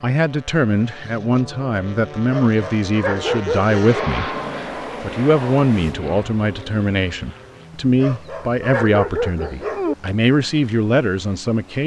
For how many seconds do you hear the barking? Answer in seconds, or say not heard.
4 s.